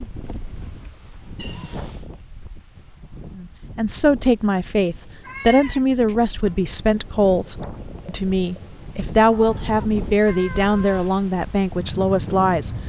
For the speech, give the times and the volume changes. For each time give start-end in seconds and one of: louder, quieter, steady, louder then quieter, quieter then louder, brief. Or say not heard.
3.4-12.7 steady.